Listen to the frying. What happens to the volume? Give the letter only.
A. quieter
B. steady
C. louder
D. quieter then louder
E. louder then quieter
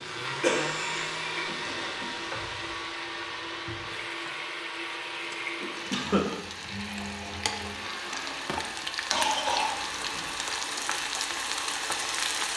C.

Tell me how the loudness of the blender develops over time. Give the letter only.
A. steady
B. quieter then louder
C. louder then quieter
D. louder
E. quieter
E.